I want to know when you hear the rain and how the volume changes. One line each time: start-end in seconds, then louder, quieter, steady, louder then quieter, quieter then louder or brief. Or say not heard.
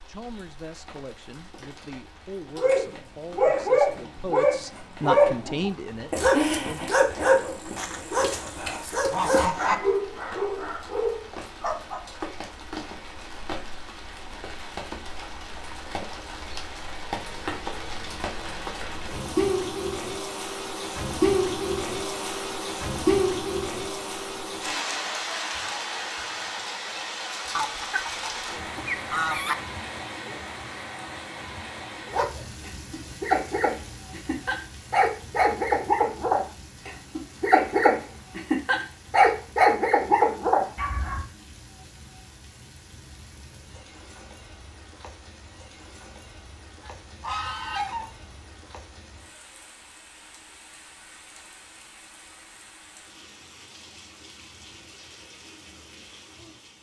0.0-56.7 louder then quieter.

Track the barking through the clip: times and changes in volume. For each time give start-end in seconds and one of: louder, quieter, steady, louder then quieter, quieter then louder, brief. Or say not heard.
2.5-12.0 quieter
32.1-41.2 louder.